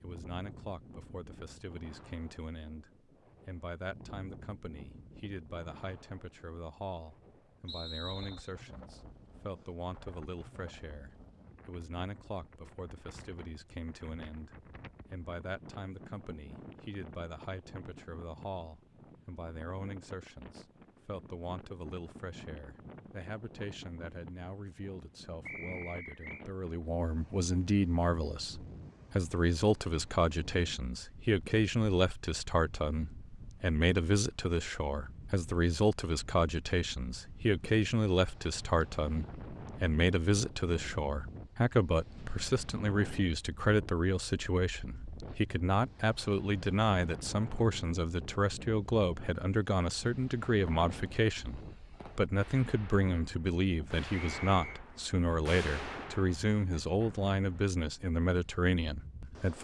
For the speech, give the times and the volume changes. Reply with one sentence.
You can hear the speech from 0.0 to 59.5 s, getting louder.